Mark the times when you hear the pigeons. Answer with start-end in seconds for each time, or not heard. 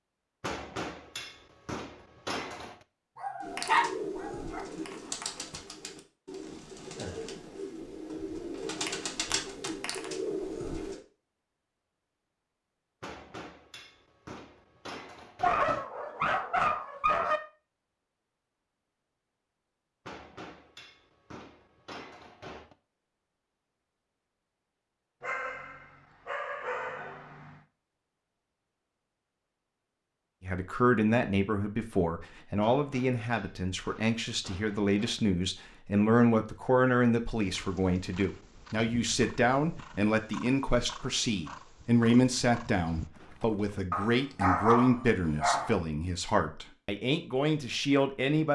3.4-11.0.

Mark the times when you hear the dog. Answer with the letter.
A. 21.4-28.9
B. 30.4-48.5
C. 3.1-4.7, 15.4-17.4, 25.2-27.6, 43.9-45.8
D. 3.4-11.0
C.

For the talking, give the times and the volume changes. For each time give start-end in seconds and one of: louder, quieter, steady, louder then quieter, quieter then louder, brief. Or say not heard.
30.4-48.5 steady.